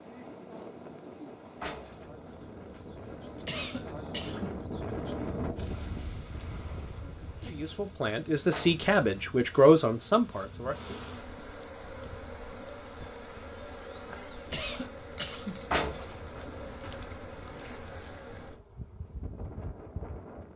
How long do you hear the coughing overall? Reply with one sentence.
You can hear the coughing for 2 seconds altogether.